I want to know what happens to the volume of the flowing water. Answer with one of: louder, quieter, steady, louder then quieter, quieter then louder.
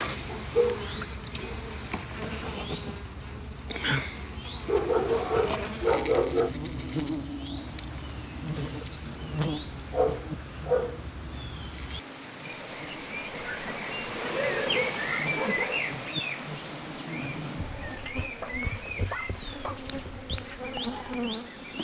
louder then quieter.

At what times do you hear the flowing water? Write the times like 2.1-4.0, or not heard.
7.5-21.7.